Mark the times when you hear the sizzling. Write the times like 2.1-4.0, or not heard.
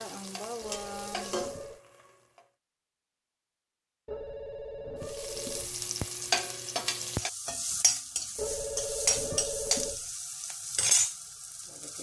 0.0-2.5, 5.0-11.9.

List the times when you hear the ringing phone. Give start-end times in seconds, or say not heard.
0.6-1.8, 4.0-5.8, 8.3-10.1.